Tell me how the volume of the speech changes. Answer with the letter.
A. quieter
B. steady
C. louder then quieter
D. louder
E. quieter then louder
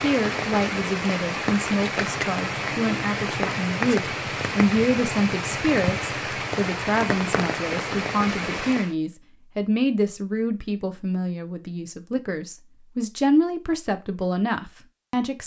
B.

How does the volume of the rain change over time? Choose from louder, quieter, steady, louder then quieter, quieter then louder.
steady.